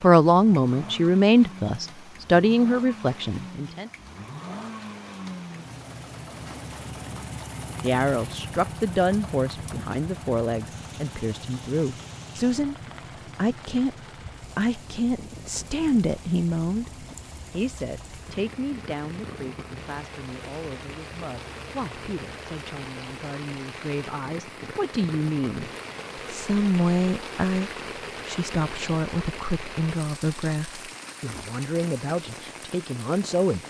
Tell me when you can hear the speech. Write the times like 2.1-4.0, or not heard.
0.0-3.9, 7.8-12.8, 13.3-13.9, 14.6-33.6.